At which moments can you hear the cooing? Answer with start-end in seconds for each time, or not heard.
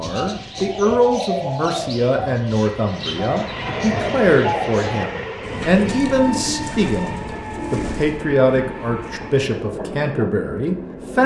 0.0-8.2.